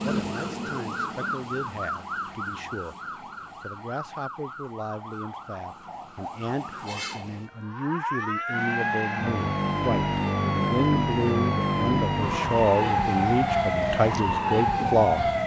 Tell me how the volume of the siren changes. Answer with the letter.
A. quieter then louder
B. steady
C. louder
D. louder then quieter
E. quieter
A.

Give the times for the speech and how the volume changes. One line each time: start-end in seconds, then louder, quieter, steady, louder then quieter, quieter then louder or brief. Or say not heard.
0.0-3.0 brief
3.6-15.2 louder.